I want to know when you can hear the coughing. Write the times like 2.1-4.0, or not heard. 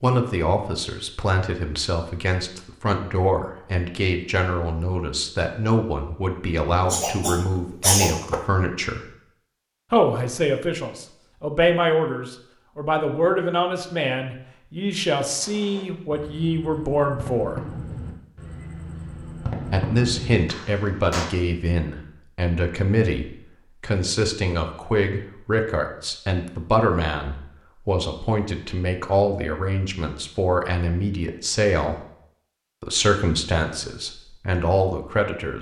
6.9-8.4.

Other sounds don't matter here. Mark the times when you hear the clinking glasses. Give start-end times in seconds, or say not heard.
not heard.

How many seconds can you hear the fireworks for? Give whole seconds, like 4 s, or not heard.
6 s.